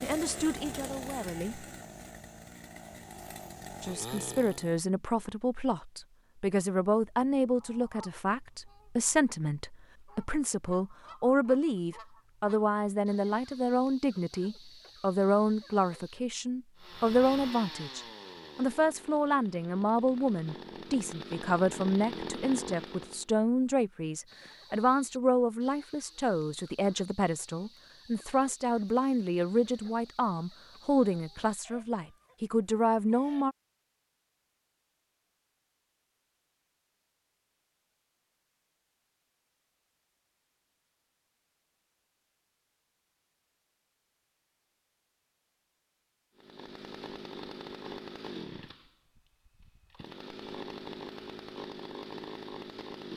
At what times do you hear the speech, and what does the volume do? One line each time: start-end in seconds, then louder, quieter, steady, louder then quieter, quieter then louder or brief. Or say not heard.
0.0-1.6 brief
3.8-33.5 steady.